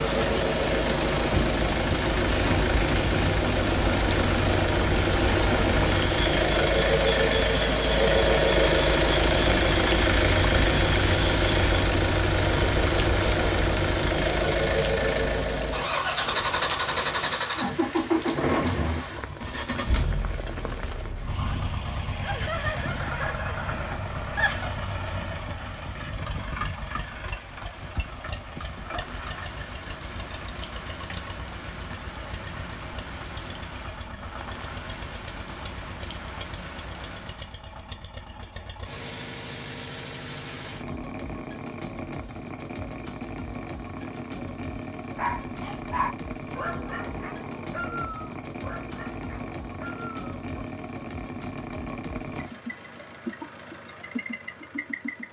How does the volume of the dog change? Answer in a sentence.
The loudness of the dog goes down.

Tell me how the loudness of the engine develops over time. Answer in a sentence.
The loudness of the engine goes down.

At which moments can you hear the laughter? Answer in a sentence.
The laughter can be heard from 22.2 to 24.7 s.